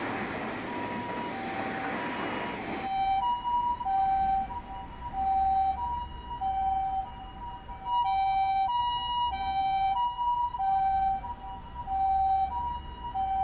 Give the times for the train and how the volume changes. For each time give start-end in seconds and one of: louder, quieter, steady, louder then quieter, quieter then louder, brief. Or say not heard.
0.0-5.9 quieter.